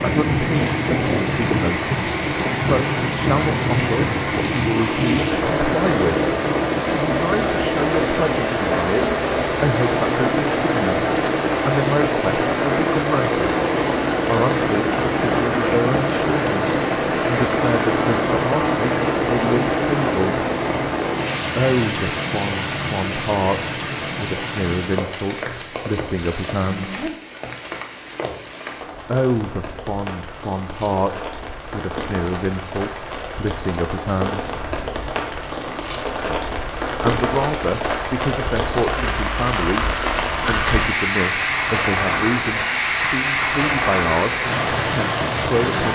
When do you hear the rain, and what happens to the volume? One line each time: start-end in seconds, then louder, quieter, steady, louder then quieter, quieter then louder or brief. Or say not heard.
0.0-45.9 quieter then louder.